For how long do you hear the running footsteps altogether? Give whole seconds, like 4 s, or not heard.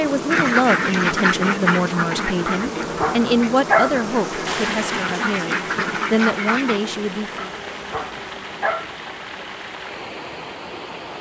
not heard.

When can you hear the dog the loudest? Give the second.
4 s.